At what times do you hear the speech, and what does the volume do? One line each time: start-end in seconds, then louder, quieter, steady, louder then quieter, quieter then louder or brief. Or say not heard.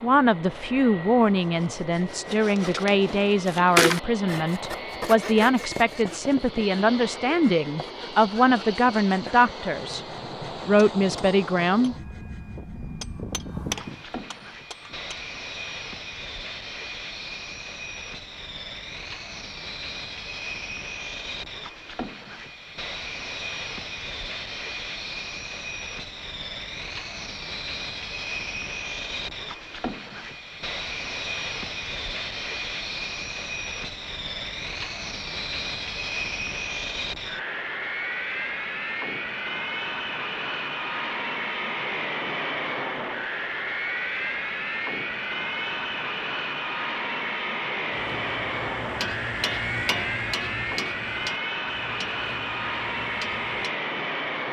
0.0-10.0 steady
10.7-11.9 brief.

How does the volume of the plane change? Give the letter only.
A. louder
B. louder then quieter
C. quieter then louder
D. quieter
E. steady
A.